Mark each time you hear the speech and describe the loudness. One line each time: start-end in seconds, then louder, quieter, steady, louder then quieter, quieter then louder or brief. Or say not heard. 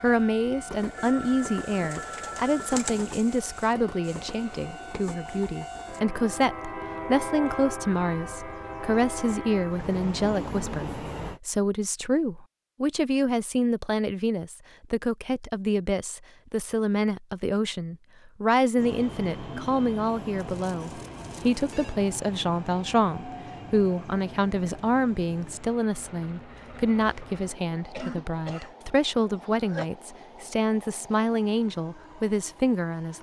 0.0-33.1 steady.